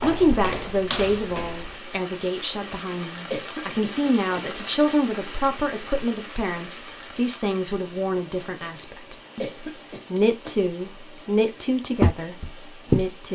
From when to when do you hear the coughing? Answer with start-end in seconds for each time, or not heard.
3.3-4.5, 9.4-10.6.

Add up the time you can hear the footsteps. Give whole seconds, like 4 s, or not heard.
3 s.